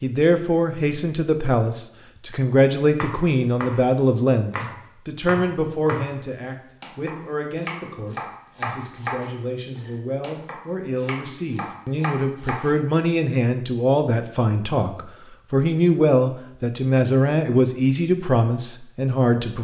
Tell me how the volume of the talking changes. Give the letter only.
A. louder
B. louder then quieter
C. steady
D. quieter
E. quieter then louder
E.